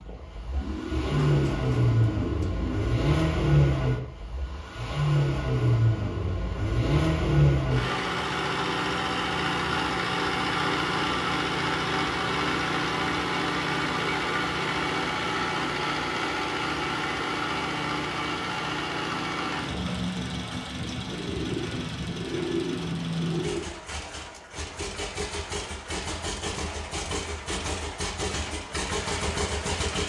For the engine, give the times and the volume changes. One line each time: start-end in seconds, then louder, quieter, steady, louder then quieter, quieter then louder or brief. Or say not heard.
0.0-30.0 quieter.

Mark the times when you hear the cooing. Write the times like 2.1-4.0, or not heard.
0.5-2.9, 21.1-23.6.